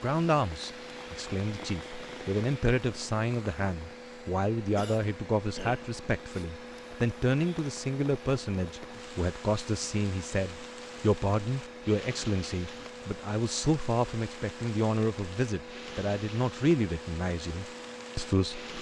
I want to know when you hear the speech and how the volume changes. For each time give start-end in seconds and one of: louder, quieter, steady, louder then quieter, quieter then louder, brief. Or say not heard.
0.0-18.7 steady.